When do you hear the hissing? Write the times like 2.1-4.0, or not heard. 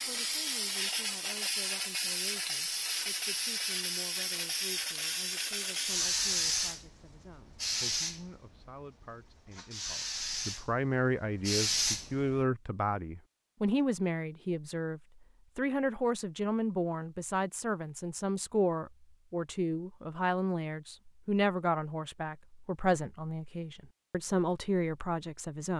0.0-12.3.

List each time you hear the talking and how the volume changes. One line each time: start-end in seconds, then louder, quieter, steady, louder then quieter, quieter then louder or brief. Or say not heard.
0.1-25.7 louder.